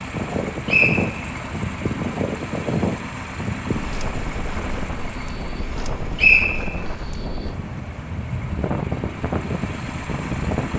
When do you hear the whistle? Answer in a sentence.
You can hear the whistle from 0.7 to 1.2 s and from 6.2 to 7.0 s.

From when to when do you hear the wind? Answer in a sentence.
The wind can be heard from 0.0 to 10.7 s.